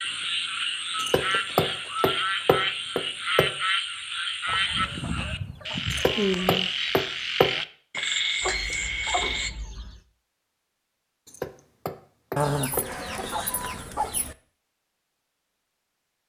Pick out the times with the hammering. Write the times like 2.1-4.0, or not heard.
0.9-3.5, 5.9-7.5, 11.2-13.3.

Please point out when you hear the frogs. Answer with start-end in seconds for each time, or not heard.
0.0-9.5.